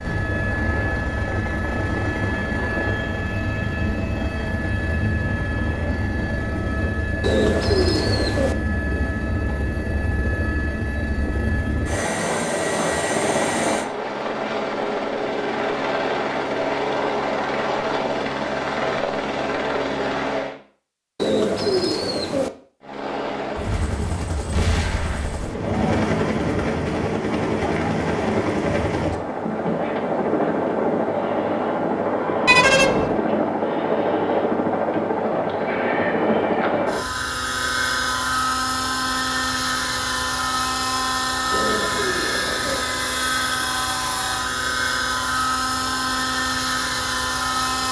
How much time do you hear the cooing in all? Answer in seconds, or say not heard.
4 s.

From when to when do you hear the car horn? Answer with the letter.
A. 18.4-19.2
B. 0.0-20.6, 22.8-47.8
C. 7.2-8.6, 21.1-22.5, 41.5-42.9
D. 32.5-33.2
D.